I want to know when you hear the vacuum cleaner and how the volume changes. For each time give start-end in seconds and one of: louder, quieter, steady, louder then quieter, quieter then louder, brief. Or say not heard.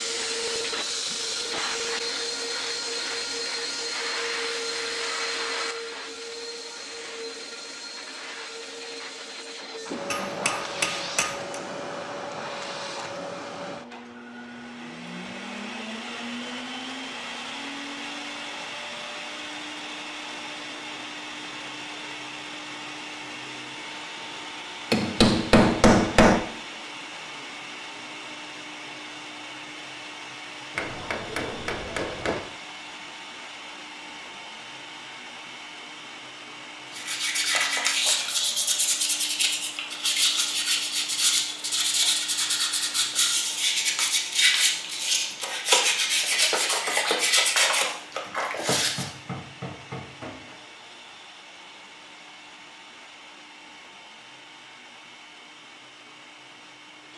0.0-57.1 quieter.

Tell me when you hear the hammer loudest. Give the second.
26 s.